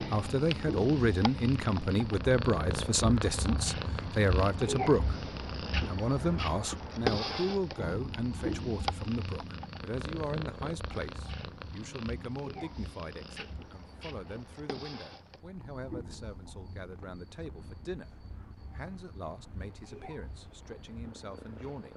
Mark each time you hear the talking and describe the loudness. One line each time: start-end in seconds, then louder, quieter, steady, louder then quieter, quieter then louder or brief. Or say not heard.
0.0-21.9 quieter.